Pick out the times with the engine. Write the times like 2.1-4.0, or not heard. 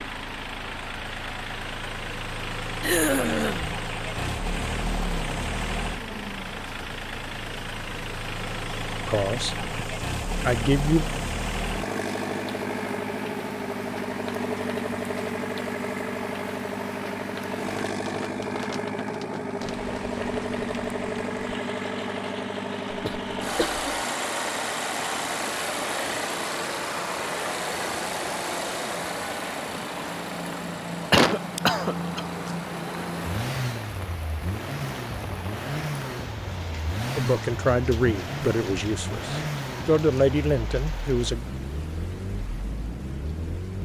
0.0-43.8.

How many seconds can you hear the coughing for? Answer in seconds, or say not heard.
3 s.